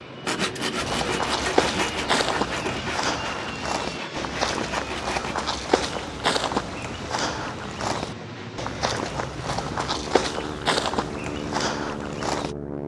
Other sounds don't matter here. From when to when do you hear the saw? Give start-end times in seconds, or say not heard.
0.2-5.3.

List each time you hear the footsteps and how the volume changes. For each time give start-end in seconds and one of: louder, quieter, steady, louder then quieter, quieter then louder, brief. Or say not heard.
0.8-12.6 steady.